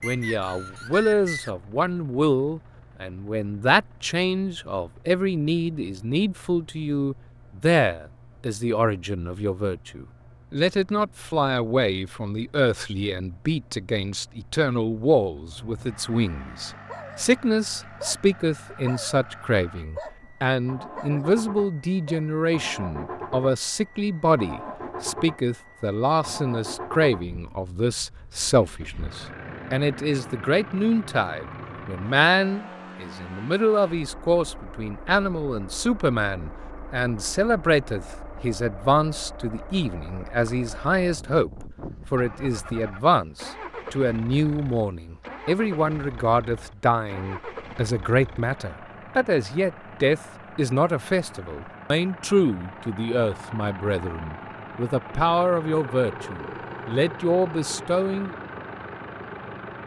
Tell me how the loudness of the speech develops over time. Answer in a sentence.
The volume of the speech stays about the same.